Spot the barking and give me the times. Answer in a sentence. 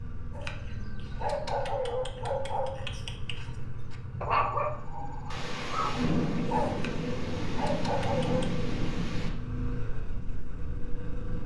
You can hear the barking from 0.3 to 8.5 s.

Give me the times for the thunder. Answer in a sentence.
You can hear the thunder from 5.3 to 9.3 s.